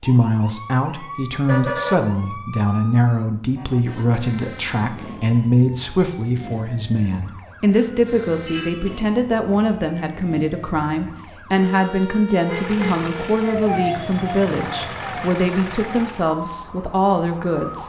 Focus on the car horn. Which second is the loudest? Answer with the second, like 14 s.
2 s.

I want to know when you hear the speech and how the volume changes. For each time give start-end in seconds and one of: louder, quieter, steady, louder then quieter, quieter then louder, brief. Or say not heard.
0.0-17.8 steady.